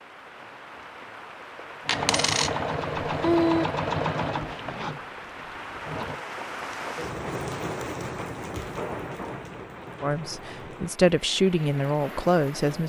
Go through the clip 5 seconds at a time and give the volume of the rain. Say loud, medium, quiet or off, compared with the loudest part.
medium, loud, medium.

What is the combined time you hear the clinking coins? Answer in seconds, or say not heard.
2 s.